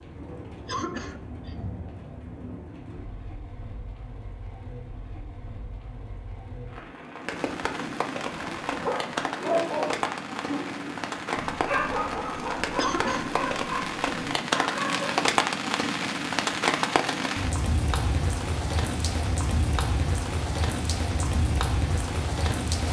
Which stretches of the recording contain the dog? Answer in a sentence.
The dog can be heard from 8.2 to 15.2 s.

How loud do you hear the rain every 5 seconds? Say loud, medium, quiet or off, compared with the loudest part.
quiet, medium, loud, loud, loud.